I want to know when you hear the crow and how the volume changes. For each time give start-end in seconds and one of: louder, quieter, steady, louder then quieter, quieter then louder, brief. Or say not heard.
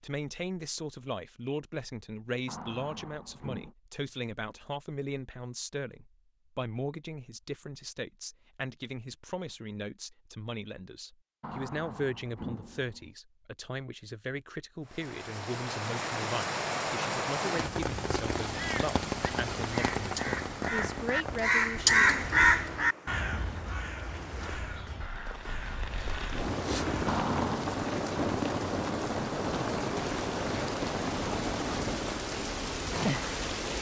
18.5-27.2 louder then quieter.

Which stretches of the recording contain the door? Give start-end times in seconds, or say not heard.
2.5-3.8, 11.4-13.1, 27.1-27.7.